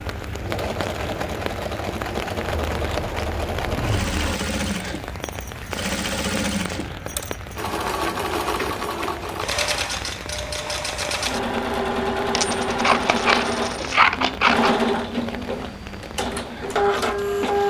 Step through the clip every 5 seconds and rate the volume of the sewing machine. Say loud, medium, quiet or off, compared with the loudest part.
medium, loud, loud, loud.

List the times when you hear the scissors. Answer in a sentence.
You can hear the scissors from 2.5 to 4.3 s and from 12.7 to 14.8 s.